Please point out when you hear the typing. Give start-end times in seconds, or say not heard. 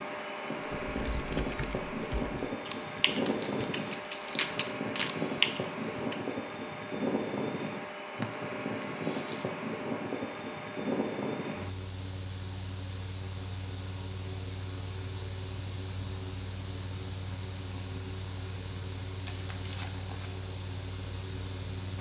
0.9-6.3.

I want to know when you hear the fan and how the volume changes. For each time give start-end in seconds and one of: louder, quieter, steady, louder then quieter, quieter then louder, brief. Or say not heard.
0.0-21.9 quieter.